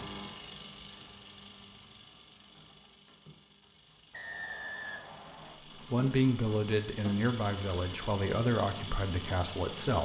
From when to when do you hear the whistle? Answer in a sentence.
The whistle can be heard from 4.1 to 5.6 s.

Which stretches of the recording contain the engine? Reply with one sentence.
The engine can be heard from 0.0 to 10.0 s.